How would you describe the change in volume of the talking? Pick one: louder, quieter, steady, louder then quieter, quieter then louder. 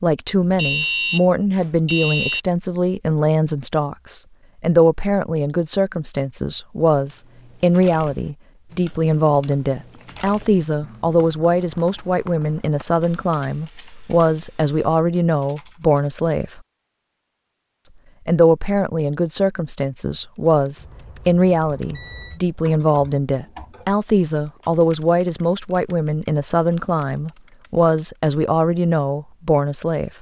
steady.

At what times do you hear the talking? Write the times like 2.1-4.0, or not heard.
0.0-16.6, 18.2-30.1.